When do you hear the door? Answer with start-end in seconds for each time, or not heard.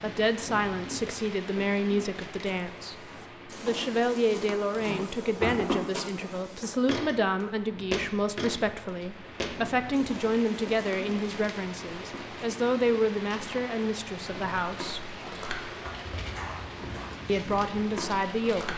4.7-5.8.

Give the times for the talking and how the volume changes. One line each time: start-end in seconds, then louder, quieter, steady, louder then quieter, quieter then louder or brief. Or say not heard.
0.0-15.2 steady
17.2-18.7 brief.